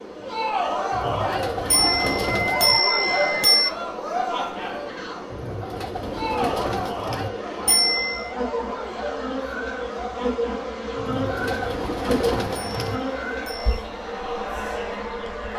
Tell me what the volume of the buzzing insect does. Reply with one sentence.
The volume of the buzzing insect goes up.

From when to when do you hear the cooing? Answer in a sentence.
You can hear the cooing from 0.9 to 2.8 s, from 5.3 to 7.3 s and from 10.9 to 13.0 s.